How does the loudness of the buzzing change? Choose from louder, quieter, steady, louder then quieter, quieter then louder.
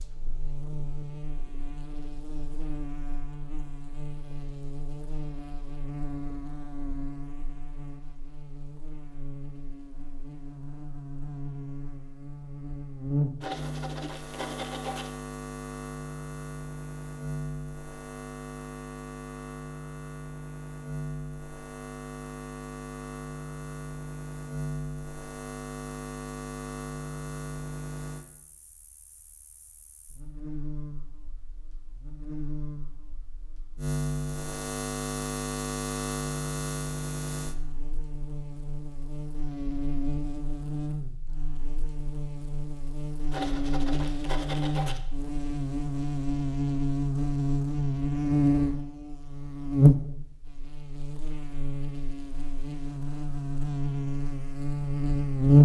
louder.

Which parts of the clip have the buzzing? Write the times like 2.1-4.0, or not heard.
0.0-55.5.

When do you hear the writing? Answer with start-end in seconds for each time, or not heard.
13.4-15.1, 43.3-45.0.